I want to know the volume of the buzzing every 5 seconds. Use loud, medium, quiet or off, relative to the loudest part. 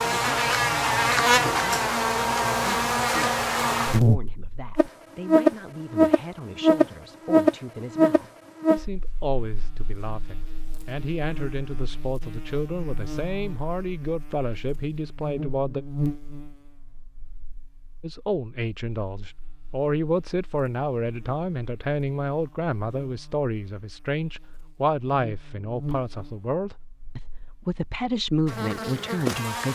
loud, loud, quiet, quiet, quiet, quiet.